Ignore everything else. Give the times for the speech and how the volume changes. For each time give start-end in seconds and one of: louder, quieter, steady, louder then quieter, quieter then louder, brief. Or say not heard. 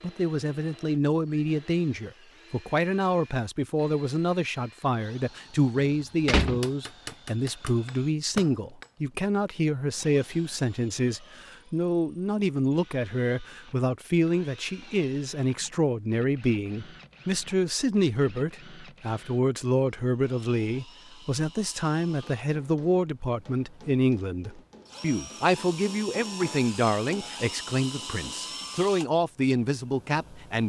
0.0-30.6 steady.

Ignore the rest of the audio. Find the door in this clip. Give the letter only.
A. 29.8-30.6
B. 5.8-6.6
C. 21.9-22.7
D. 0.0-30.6
B.